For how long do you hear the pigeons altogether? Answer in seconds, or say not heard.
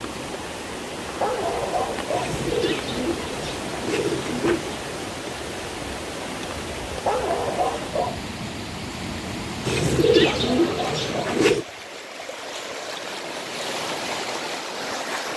5 s.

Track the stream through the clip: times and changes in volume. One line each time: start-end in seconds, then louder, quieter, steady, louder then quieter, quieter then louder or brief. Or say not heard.
0.0-15.3 steady.